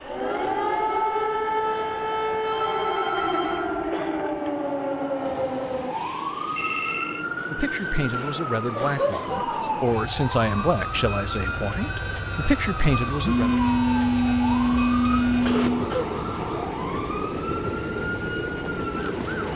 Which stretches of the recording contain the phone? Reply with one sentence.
You can hear the phone from 2.4 to 3.7 s, from 6.5 to 7.2 s and from 13.2 to 15.9 s.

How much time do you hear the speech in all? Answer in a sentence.
You can hear the speech for 6 seconds altogether.